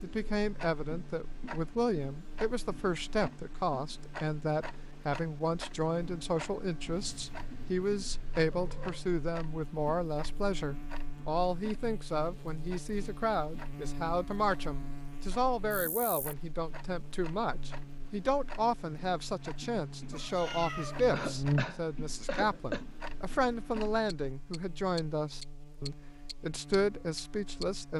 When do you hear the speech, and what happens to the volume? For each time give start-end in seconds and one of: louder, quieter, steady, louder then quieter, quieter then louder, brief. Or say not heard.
0.0-27.9 steady.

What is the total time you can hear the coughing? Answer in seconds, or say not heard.
2 s.